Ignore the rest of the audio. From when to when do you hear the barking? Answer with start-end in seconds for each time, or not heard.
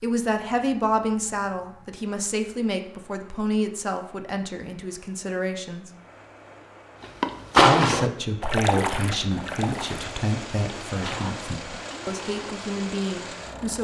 not heard.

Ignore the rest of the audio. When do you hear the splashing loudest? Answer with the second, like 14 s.
8 s.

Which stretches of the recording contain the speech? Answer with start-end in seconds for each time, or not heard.
0.0-5.9, 7.6-13.8.